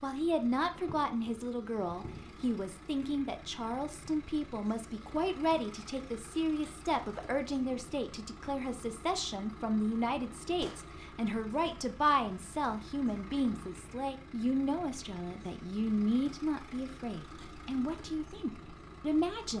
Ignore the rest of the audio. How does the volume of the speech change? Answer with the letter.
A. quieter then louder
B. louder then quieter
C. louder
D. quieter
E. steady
E.